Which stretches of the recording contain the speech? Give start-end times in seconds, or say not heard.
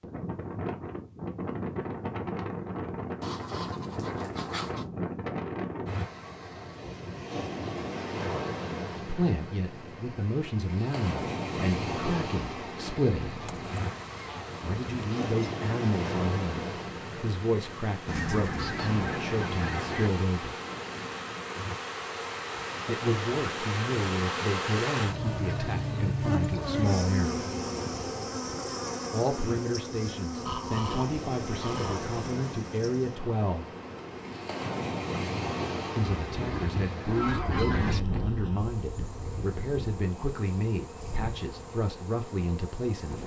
9.0-13.4, 14.6-20.6, 22.9-27.4, 29.1-33.6, 36.0-43.2.